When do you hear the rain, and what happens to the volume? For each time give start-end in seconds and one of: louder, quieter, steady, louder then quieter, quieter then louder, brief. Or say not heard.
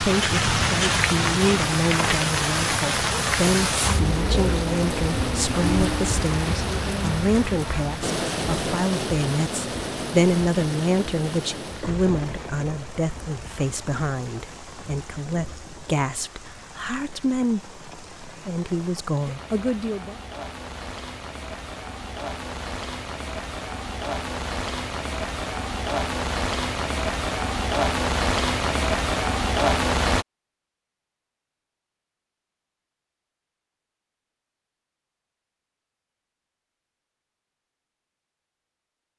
0.0-30.2 quieter then louder.